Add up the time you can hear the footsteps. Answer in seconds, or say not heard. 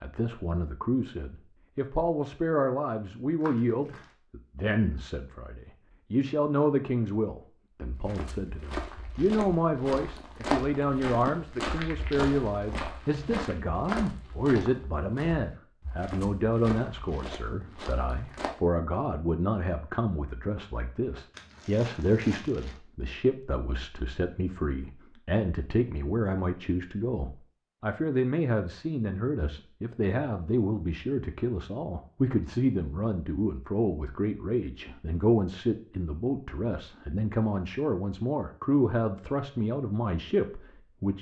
11 s.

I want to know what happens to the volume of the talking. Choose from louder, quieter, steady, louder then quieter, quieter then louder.
steady.